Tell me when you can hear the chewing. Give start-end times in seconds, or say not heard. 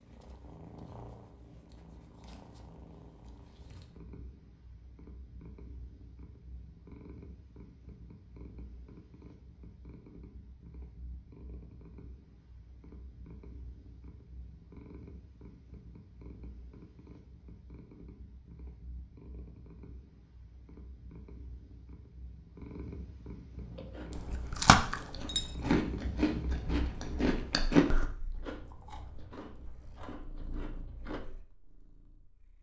23.8-31.2.